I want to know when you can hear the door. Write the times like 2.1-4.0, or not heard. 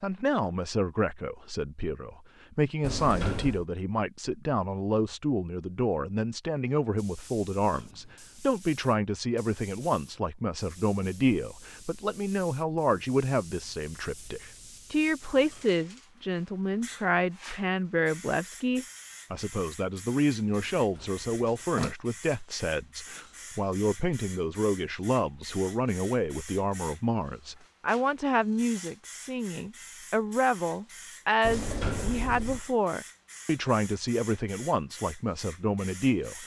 2.8-3.6, 20.6-21.9, 31.4-32.6.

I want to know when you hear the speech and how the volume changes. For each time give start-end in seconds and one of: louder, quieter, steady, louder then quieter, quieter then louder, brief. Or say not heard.
0.0-36.4 steady.